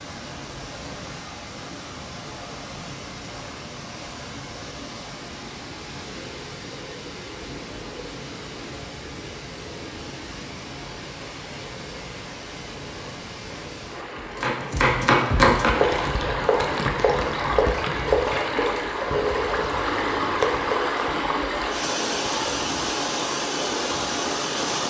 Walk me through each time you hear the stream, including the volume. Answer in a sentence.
You can hear the stream from 0.0 to 24.8 s, getting louder.